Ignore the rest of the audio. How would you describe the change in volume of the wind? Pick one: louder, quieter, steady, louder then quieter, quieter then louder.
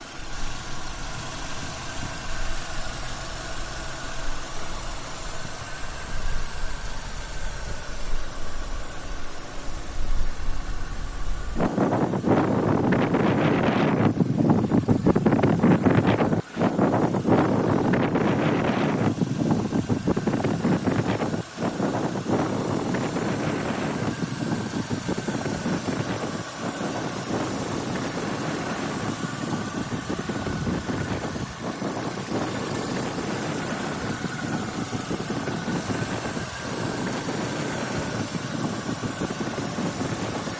louder then quieter.